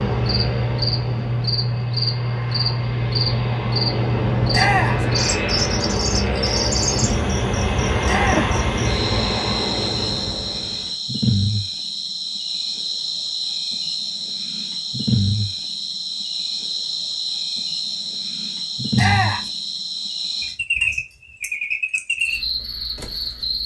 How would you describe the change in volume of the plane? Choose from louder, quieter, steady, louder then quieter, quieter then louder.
louder.